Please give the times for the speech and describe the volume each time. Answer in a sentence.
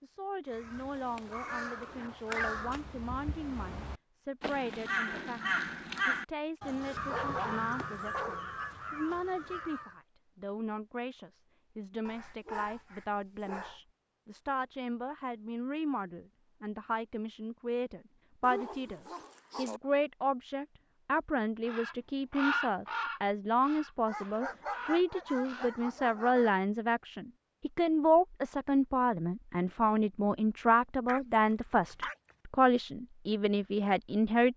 The speech can be heard from 0.0 to 34.5 s, getting louder.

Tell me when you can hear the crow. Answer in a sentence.
The crow can be heard from 0.5 to 9.9 s and from 21.6 to 25.7 s.